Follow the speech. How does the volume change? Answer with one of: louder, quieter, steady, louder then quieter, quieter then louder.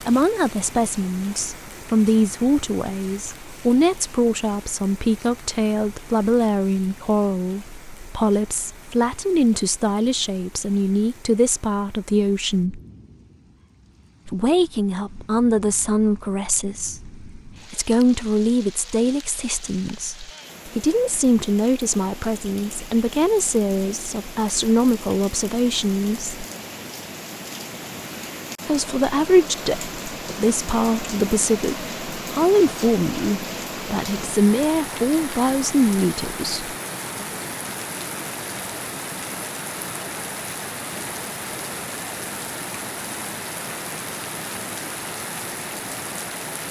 steady.